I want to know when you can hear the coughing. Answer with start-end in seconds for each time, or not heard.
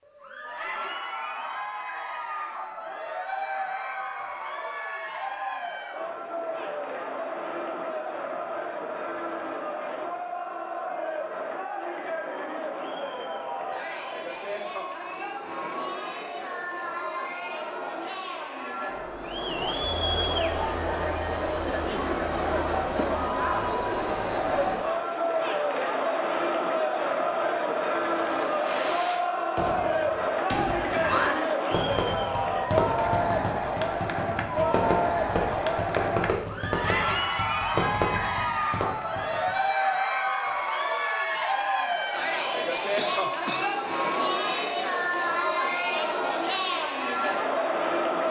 43.0-43.7.